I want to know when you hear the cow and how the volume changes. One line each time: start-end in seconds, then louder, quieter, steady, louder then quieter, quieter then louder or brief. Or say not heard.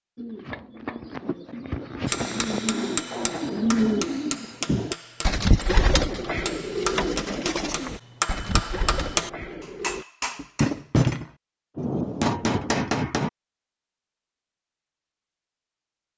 not heard.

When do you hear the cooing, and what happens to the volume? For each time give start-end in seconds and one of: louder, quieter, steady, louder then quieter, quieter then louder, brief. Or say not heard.
0.1-10.1 louder then quieter.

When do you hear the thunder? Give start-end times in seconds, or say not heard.
11.8-12.8.